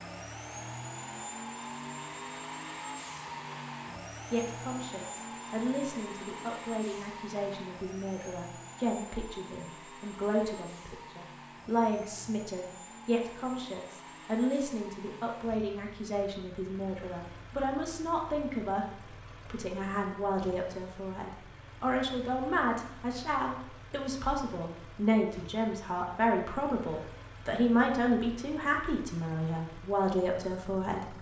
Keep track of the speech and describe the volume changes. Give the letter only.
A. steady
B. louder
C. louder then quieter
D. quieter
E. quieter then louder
B.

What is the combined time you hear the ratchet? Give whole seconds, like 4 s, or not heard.
not heard.